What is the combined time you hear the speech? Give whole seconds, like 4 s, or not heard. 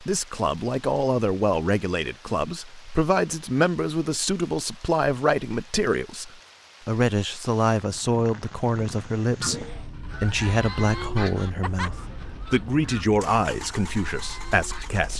15 s.